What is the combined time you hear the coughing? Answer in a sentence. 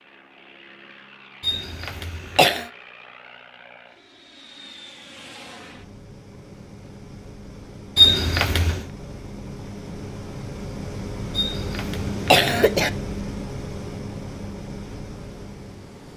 You can hear the coughing for 4 seconds altogether.